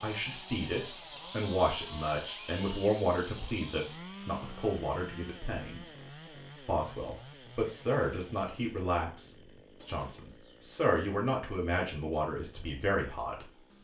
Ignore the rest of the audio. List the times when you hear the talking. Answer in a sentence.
You can hear the talking from 0.0 to 5.8 s and from 6.7 to 13.4 s.